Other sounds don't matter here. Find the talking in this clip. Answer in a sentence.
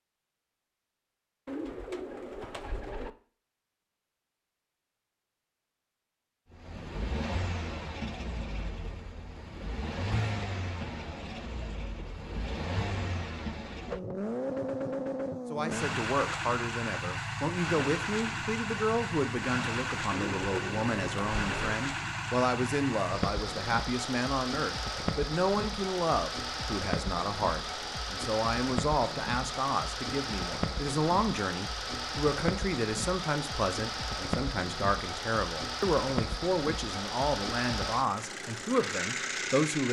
You can hear the talking from 15.5 to 39.8 s.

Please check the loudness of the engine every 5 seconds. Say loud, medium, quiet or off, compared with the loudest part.
off, medium, loud, loud, loud, loud, loud, loud.